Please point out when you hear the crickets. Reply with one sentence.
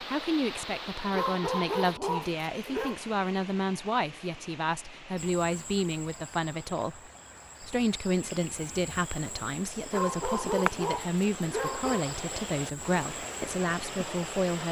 The crickets can be heard from 5.2 to 14.6 s.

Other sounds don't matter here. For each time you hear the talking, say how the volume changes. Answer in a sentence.
The talking can be heard from 0.0 to 14.6 s, at a steady volume.